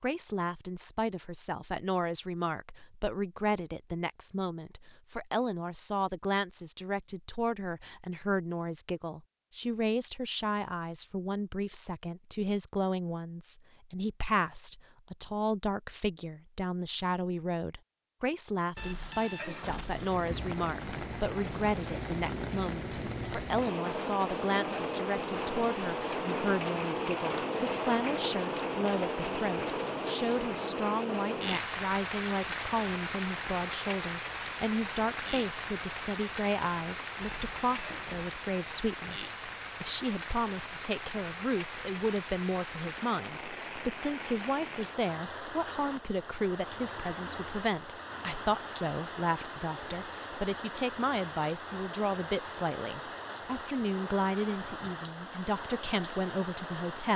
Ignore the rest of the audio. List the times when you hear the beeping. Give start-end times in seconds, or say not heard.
18.8-20.1, 37.2-38.3.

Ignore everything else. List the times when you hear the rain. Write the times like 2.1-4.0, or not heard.
19.8-57.1.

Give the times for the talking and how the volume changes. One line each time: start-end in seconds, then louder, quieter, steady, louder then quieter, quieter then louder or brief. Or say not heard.
0.0-57.1 steady.